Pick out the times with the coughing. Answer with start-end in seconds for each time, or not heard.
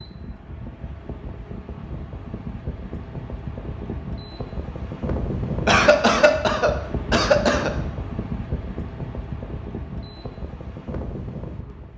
5.7-7.7.